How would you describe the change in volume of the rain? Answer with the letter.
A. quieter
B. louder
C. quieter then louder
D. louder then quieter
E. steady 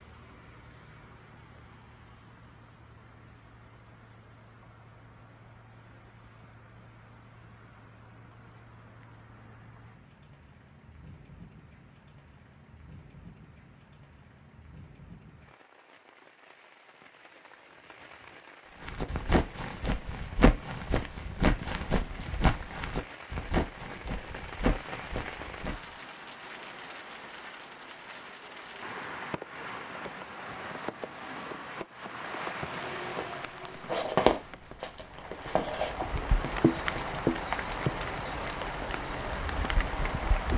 B.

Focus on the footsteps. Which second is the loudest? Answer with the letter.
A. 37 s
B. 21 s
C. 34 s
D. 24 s
C.